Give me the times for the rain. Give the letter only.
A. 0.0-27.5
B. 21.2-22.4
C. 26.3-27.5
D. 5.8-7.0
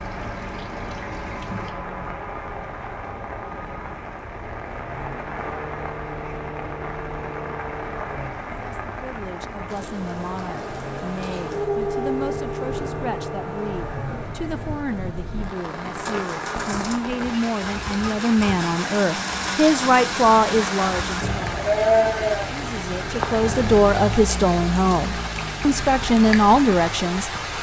A.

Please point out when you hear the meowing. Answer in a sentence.
You can't hear the meowing here.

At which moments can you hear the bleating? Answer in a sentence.
You can hear the bleating from 21.2 to 22.4 s.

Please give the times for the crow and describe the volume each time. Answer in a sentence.
You can't hear the crow here.